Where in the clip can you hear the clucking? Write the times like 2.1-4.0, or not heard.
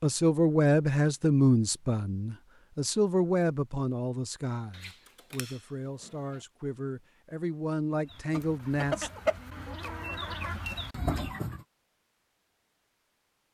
8.1-11.6.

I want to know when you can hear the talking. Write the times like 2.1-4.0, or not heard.
0.0-9.1.